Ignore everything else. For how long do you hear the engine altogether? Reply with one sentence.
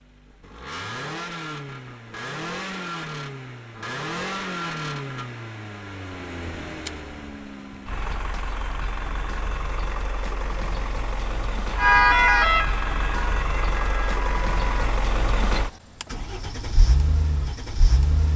The engine can be heard for 18 seconds in total.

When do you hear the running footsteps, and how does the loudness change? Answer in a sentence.
The running footsteps can't be heard in this clip.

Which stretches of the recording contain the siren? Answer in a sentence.
You can hear the siren from 11.8 to 15.0 s.